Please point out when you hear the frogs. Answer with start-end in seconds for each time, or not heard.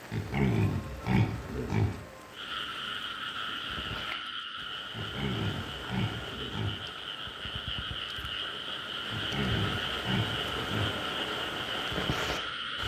2.3-12.8.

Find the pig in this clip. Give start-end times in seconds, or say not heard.
0.1-2.0, 4.9-6.8, 9.1-10.9.